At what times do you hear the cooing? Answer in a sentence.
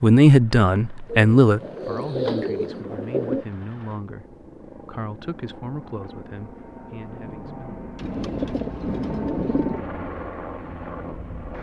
The cooing can be heard from 1.1 to 3.5 s and from 8.0 to 9.8 s.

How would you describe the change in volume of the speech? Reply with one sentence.
The volume of the speech goes down.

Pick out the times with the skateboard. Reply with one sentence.
You can't hear the skateboard here.